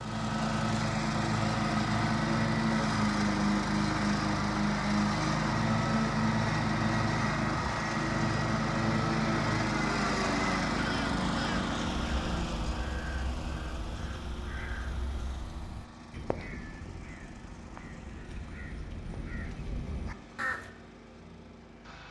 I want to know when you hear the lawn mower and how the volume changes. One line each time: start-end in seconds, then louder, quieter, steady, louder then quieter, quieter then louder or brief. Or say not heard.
0.0-22.0 quieter.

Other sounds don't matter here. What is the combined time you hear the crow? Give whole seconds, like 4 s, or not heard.
10 s.